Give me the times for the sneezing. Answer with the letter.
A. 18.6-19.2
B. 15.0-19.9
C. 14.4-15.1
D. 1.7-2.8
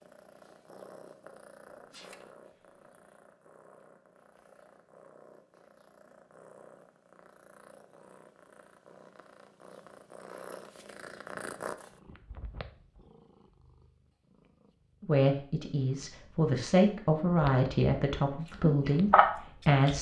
D.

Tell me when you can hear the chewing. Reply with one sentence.
The chewing can be heard from 18.6 to 19.2 s.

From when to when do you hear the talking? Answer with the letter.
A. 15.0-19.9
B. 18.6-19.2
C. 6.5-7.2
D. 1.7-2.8
A.